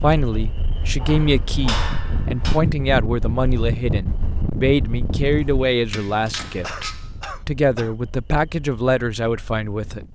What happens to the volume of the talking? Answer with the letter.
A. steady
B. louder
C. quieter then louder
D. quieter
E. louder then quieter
A.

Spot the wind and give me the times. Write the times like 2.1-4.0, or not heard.
0.0-10.0.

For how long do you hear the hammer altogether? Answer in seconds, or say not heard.
3 s.